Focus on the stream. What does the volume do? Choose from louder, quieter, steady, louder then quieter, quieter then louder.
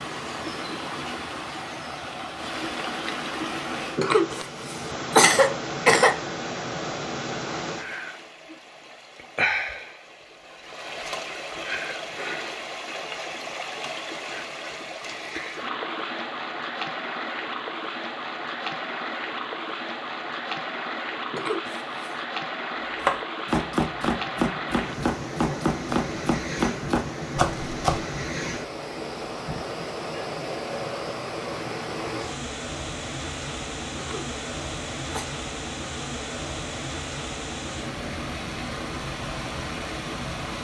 steady.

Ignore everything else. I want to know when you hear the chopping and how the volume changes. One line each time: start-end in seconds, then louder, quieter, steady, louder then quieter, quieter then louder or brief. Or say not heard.
23.0-28.1 steady.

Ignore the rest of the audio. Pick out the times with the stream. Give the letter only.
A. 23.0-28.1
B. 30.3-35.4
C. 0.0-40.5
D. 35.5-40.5
C.